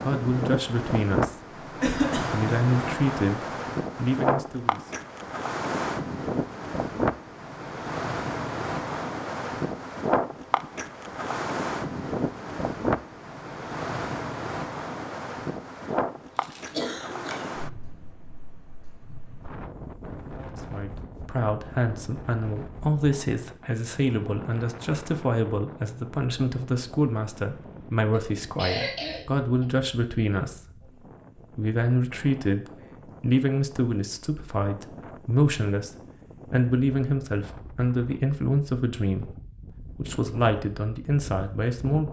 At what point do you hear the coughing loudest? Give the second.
2 s.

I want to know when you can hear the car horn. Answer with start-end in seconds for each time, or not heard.
not heard.